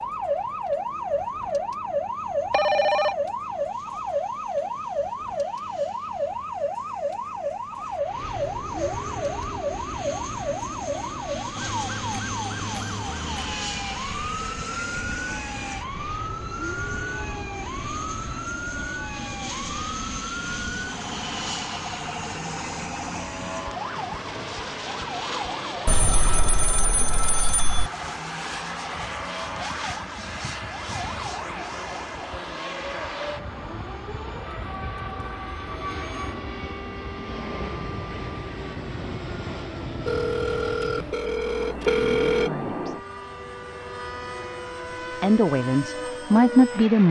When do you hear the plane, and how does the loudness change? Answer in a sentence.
You can hear the plane from 0.0 to 47.0 s, getting louder.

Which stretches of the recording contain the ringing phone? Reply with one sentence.
You can hear the ringing phone from 2.5 to 3.1 s, from 25.9 to 27.9 s and from 40.0 to 42.5 s.